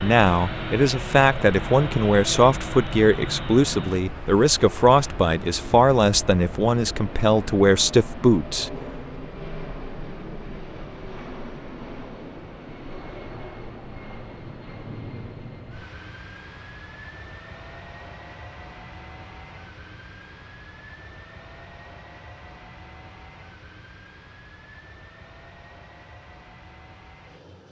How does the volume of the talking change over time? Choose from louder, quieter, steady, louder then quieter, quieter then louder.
steady.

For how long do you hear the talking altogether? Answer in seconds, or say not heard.
9 s.